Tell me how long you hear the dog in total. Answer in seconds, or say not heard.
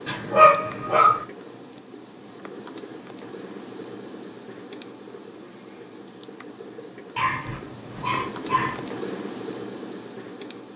3 s.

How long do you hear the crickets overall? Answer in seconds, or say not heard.
11 s.